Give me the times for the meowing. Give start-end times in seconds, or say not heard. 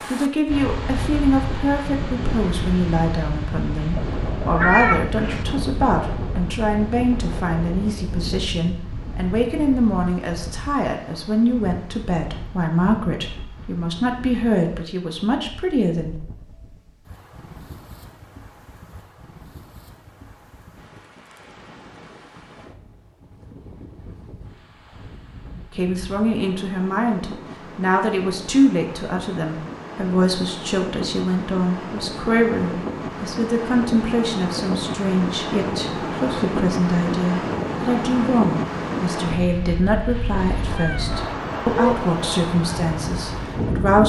4.0-5.5, 40.8-42.0.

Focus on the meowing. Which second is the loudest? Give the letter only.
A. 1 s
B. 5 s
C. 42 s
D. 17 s
B.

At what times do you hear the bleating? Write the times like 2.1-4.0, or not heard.
not heard.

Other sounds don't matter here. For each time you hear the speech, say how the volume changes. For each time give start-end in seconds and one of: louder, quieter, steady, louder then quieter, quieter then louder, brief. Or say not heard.
0.1-16.1 steady
25.8-44.0 steady.